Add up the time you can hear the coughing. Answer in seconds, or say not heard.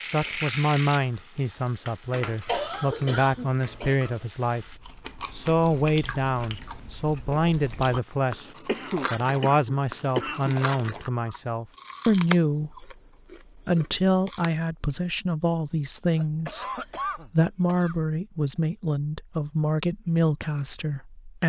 5 s.